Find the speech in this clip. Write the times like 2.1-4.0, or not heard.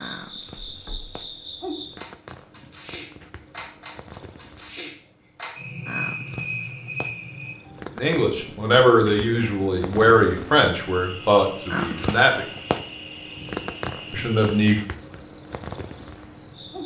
8.0-12.4, 14.1-14.8.